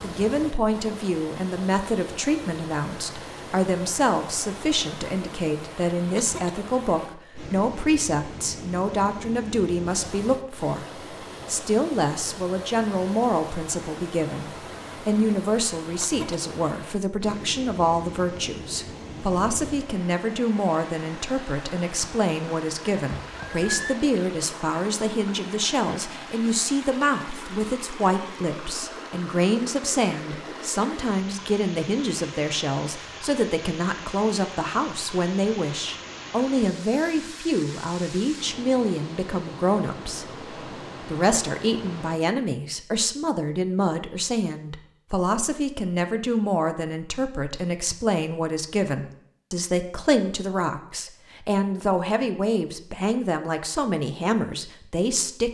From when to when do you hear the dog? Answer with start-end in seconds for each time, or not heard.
not heard.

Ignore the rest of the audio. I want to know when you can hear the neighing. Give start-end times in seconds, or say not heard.
23.2-23.9.